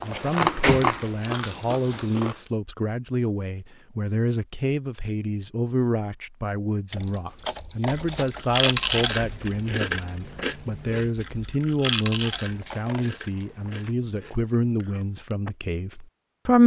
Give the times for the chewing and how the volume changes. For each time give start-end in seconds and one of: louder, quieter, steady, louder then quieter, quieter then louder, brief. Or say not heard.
0.0-2.4 brief
7.8-15.6 quieter.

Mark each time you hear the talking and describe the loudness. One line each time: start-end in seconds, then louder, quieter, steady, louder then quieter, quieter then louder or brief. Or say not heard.
0.0-16.6 steady.